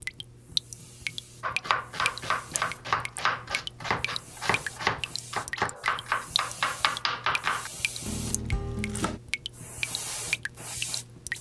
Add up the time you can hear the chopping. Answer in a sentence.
You can hear the chopping for 8 seconds altogether.